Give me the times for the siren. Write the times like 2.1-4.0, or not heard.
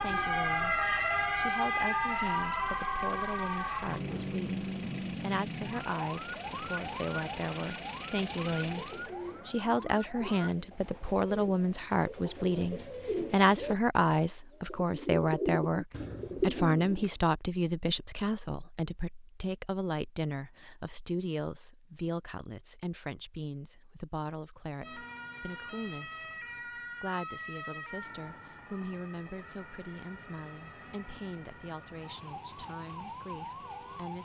0.0-10.4, 24.8-34.2.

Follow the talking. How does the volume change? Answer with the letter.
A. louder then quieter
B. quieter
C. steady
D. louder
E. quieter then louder
A.